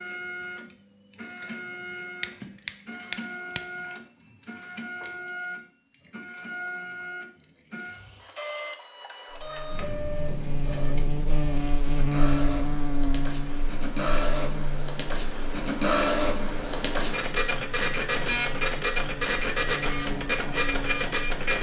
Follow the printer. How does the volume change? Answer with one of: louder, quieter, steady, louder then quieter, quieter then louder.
louder.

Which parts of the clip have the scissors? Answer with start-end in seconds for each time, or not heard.
2.2-3.6.